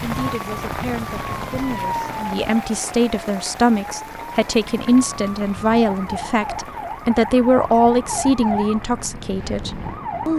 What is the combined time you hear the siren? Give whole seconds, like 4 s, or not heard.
10 s.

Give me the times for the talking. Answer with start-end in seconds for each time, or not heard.
0.0-10.3.